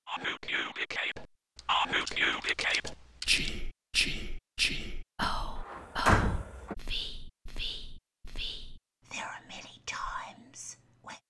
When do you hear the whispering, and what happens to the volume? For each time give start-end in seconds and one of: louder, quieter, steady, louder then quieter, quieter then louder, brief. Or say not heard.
0.1-11.2 quieter.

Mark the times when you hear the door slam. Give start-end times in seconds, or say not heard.
5.2-6.8.